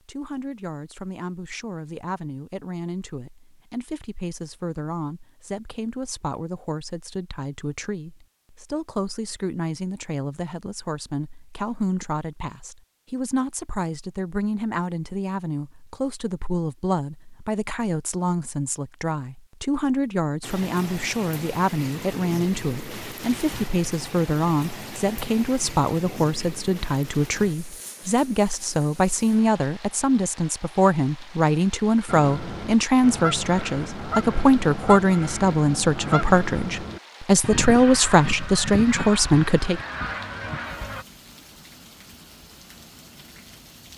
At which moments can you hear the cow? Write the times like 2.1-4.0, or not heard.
not heard.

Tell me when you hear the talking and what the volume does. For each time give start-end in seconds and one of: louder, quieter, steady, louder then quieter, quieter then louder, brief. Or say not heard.
0.1-39.8 louder.